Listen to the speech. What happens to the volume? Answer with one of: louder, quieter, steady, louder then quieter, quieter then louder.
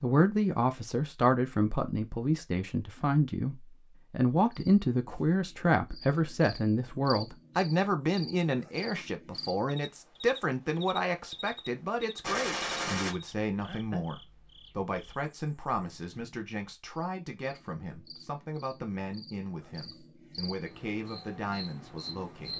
quieter.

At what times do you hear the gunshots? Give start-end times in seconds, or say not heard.
12.2-13.2.